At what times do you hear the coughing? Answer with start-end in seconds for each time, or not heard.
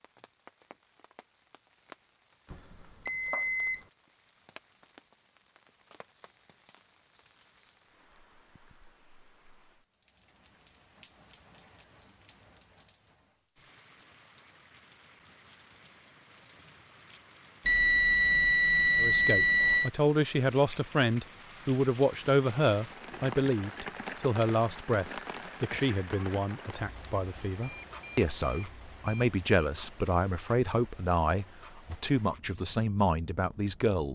not heard.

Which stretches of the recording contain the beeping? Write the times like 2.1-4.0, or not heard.
2.5-3.8, 17.6-19.9, 27.6-29.7.